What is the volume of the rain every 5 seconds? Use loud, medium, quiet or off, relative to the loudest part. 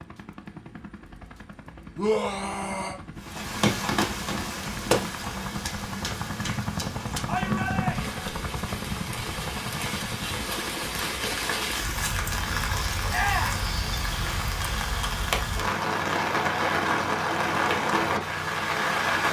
loud, medium, medium, loud.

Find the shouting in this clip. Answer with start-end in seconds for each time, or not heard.
1.9-3.0, 7.2-8.2, 13.1-13.7.